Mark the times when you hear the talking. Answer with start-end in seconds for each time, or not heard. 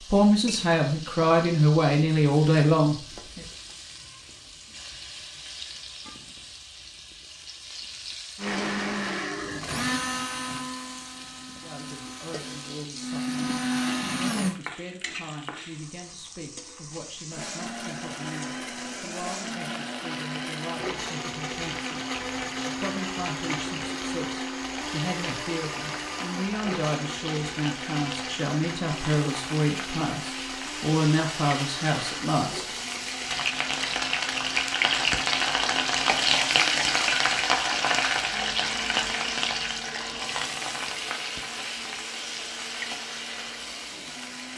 0.1-3.5, 11.6-32.8.